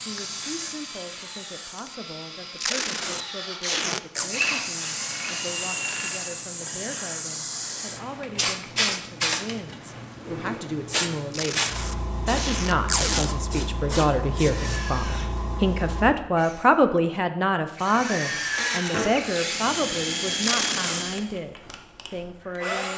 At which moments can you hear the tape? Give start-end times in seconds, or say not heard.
2.5-4.3, 11.3-13.3, 20.4-21.1.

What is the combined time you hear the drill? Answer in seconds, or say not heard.
15 s.